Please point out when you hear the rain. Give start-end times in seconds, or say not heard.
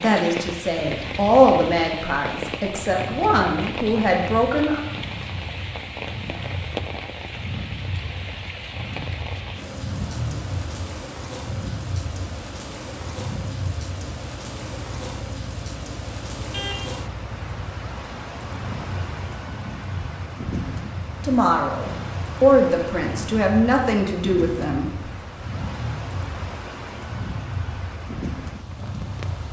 0.0-29.4.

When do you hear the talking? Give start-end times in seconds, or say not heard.
0.0-4.8, 21.2-25.1.